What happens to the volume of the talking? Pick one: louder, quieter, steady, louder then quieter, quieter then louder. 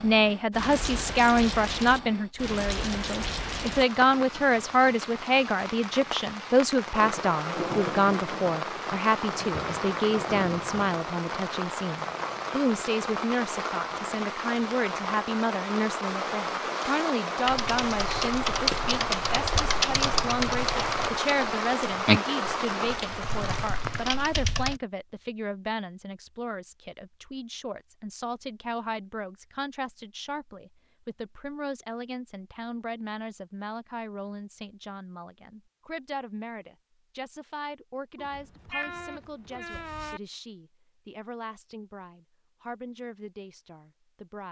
quieter.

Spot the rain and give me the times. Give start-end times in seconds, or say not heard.
0.0-24.4.